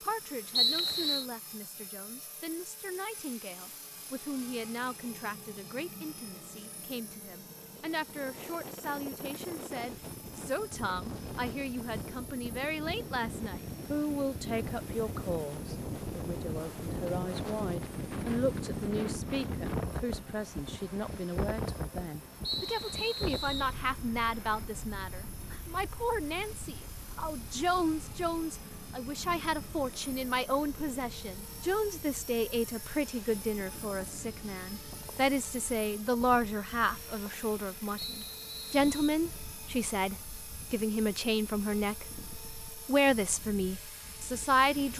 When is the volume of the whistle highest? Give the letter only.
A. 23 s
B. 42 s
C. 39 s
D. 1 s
D.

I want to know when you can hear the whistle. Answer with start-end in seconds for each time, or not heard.
0.6-1.2, 22.4-23.8, 38.0-39.1.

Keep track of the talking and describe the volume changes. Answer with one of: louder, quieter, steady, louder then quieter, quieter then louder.
louder.